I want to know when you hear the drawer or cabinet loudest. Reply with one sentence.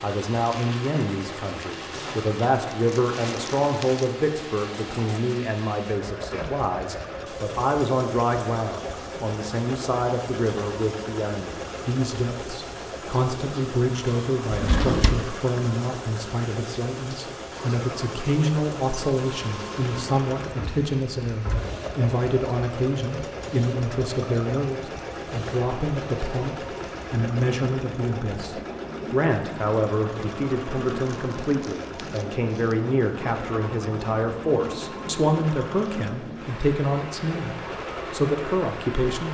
The volume of the drawer or cabinet peaks at 15 seconds.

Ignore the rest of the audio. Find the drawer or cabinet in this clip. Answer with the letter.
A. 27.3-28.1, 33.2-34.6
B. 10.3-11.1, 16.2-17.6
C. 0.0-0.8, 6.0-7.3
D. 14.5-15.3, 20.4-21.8
D.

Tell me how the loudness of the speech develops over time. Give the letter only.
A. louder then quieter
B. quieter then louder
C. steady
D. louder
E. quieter
C.